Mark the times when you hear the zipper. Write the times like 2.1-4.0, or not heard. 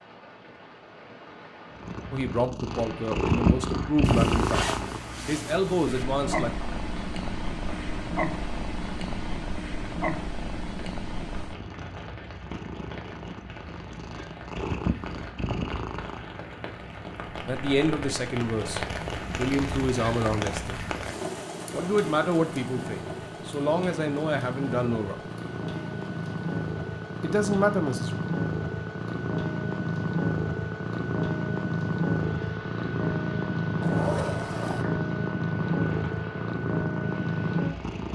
4.0-6.0, 33.8-34.9.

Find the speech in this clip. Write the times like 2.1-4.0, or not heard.
2.1-6.5, 17.4-20.8, 21.7-25.2, 27.2-28.1.